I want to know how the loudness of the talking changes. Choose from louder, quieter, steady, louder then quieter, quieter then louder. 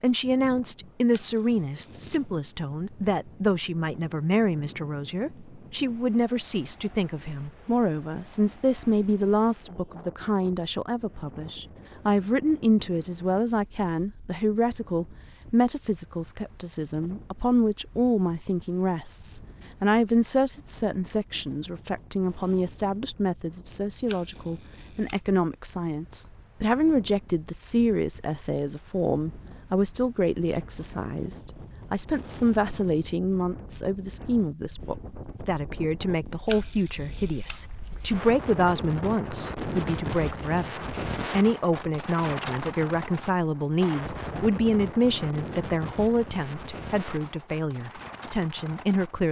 steady.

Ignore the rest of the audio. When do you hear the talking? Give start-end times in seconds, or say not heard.
0.0-49.2.